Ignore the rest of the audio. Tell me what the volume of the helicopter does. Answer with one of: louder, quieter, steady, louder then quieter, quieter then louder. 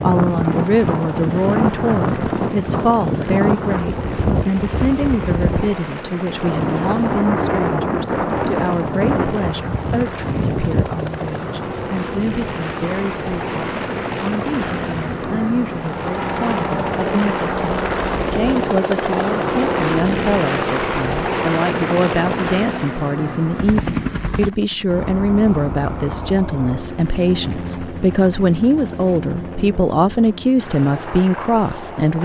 louder then quieter.